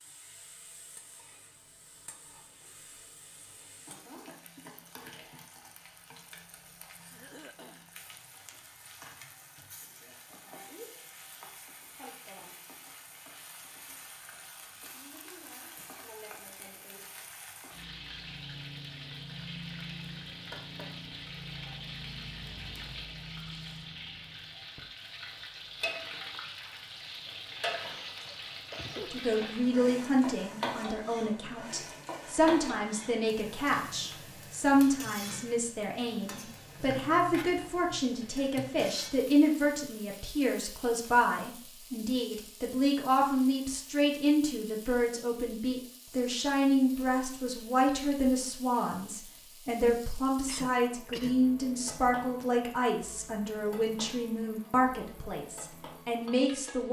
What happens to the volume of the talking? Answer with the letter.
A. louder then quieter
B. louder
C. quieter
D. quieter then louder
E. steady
E.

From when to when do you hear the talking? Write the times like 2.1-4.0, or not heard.
29.1-56.8.